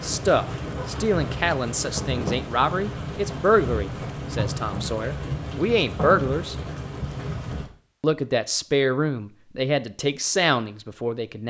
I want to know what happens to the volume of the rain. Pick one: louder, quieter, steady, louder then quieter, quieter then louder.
steady.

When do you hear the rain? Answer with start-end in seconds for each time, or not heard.
0.0-7.7.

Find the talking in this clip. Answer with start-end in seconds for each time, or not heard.
0.0-6.5, 8.0-11.4.